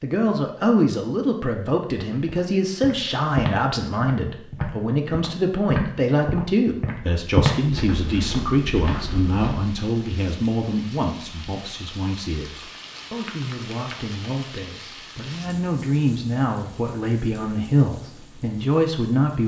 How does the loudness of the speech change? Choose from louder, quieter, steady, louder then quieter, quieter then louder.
quieter then louder.